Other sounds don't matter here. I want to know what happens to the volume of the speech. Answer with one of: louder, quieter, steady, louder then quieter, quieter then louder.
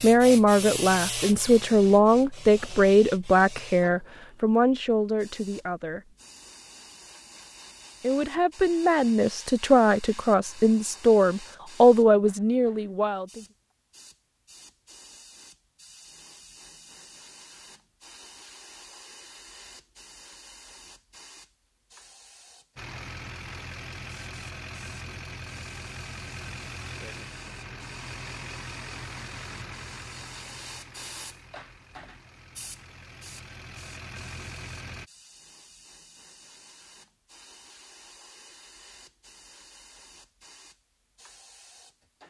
quieter then louder.